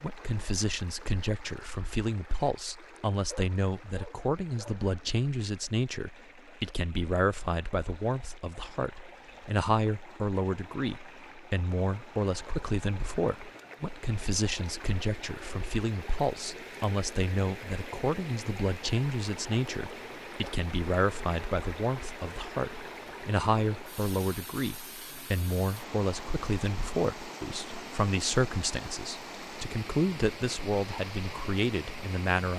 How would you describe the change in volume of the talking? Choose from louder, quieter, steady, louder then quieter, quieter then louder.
steady.